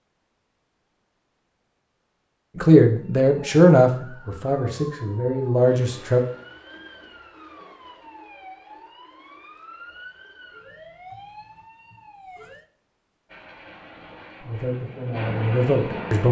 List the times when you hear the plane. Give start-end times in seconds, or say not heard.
13.2-16.2.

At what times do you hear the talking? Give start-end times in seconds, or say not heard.
2.5-6.2, 14.4-16.2.